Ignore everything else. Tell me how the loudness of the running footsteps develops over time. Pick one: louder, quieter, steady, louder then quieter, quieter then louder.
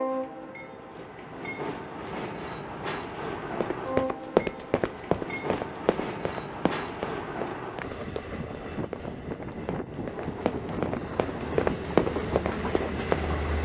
quieter then louder.